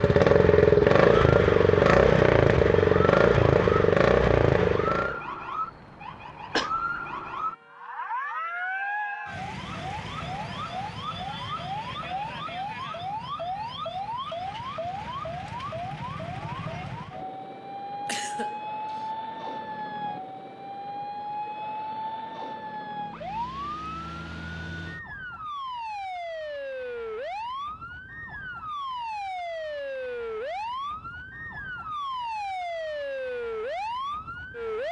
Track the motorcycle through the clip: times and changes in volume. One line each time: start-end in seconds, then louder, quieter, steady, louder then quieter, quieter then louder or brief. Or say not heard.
0.0-5.2 steady.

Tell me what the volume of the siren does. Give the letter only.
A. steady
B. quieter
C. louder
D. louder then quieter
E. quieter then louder
A.